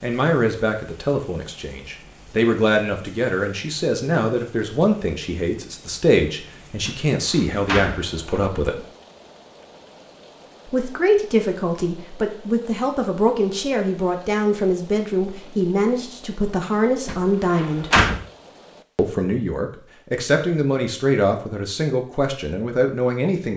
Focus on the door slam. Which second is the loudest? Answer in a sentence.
The loudest moment of the door slam is at 18 seconds.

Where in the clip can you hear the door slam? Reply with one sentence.
You can hear the door slam from 6.8 to 8.5 s and from 17.1 to 18.2 s.